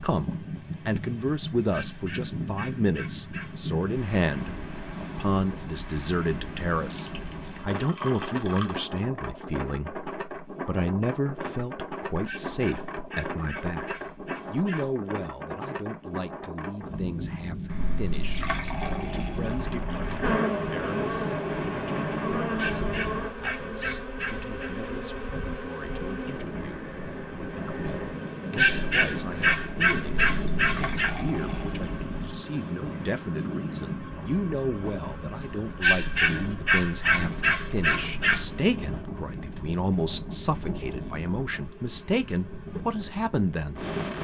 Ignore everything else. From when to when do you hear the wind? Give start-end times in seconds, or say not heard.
0.0-44.1.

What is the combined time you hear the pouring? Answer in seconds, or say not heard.
7 s.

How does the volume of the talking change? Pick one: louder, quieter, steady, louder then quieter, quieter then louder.
quieter then louder.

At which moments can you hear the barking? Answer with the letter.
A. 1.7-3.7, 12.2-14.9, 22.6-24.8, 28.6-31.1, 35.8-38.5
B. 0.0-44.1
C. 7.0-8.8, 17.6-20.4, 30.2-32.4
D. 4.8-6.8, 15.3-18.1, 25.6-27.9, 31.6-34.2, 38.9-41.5
A.